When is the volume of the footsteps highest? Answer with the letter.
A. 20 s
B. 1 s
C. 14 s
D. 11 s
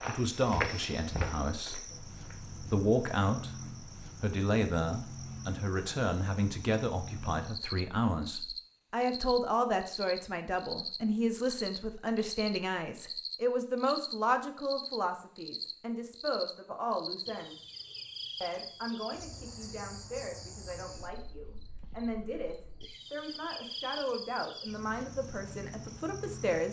B.